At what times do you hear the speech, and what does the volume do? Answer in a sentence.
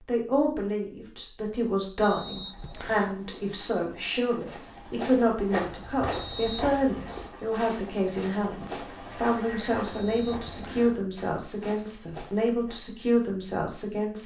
The speech can be heard from 0.1 to 14.2 s, at a steady volume.